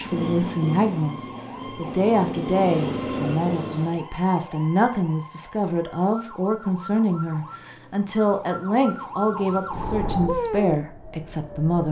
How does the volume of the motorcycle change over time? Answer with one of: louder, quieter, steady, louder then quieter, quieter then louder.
quieter then louder.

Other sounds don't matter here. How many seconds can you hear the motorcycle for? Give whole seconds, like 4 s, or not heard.
4 s.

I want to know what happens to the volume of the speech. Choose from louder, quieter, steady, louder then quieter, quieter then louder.
steady.